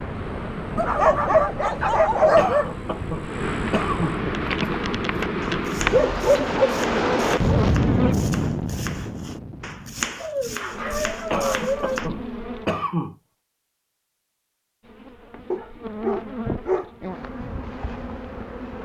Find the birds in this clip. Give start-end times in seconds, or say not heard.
not heard.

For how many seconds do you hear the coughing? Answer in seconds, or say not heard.
4 s.